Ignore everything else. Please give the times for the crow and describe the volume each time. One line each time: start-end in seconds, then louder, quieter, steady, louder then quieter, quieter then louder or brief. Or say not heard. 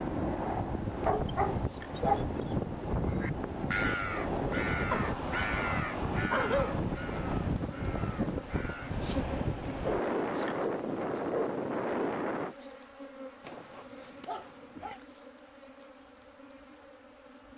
3.0-8.9 quieter.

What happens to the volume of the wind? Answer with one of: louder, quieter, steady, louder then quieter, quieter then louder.
steady.